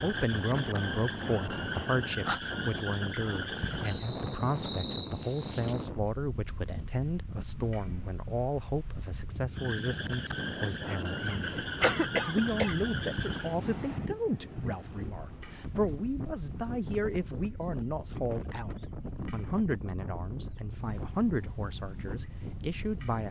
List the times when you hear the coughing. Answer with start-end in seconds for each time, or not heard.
11.3-12.8.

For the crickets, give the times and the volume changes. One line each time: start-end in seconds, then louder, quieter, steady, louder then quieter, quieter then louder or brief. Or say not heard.
0.0-23.2 steady.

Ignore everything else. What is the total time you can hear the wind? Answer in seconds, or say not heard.
23 s.